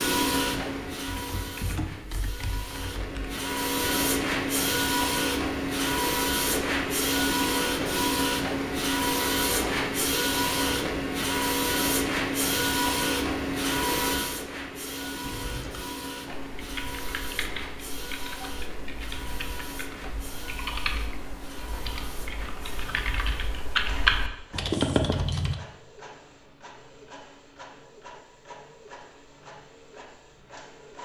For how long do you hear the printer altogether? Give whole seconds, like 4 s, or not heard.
31 s.